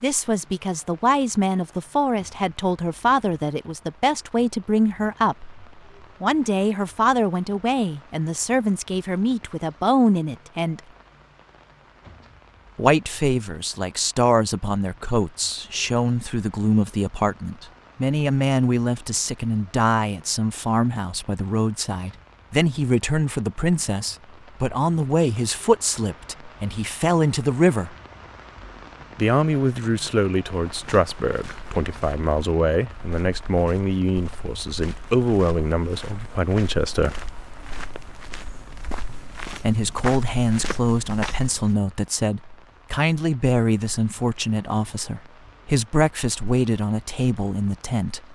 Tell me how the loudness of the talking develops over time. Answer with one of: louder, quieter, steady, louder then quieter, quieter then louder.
steady.